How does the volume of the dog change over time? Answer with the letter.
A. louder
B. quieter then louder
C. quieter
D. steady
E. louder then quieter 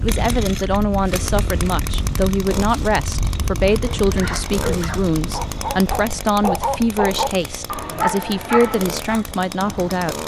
A.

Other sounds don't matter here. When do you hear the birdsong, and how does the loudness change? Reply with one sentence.
The birdsong can't be heard in this clip.